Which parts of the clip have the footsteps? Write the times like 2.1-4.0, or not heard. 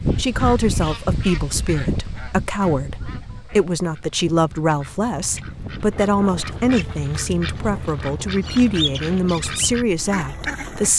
not heard.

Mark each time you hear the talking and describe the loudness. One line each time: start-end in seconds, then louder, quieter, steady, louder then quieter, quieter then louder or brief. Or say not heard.
0.1-10.9 steady.